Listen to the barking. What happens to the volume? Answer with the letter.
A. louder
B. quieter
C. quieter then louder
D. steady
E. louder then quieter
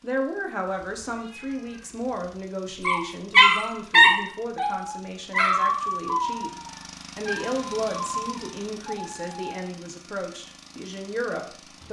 B.